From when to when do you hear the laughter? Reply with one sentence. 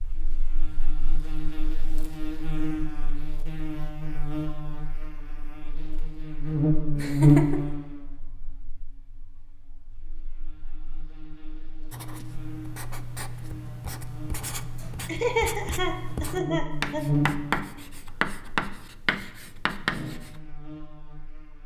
You can hear the laughter from 7.0 to 7.6 s and from 15.1 to 17.0 s.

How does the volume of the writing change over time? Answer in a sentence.
The volume of the writing goes up.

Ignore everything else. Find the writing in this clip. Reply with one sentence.
The writing can be heard from 11.9 to 20.4 s.